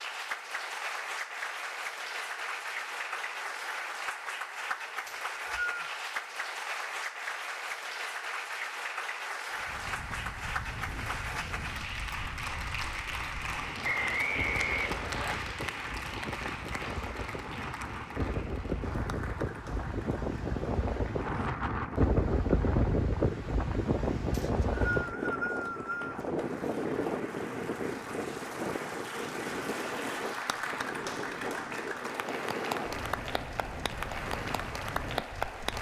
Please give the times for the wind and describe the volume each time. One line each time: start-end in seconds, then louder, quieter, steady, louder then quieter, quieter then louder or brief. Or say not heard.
9.5-35.7 louder then quieter.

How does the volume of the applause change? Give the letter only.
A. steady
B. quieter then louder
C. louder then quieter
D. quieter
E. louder
B.